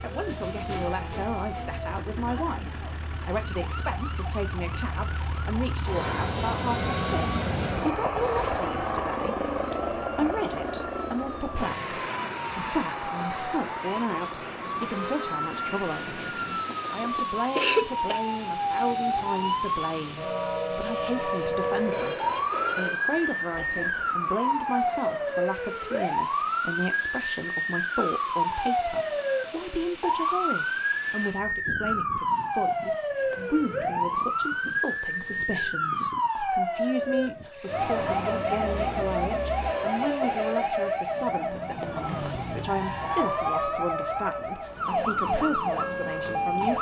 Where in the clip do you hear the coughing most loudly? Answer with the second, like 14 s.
18 s.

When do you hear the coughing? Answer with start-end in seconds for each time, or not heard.
16.6-18.2, 23.5-24.1.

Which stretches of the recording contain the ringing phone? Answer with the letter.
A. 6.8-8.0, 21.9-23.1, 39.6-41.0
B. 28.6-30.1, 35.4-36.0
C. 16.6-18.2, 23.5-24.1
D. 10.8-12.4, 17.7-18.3
A.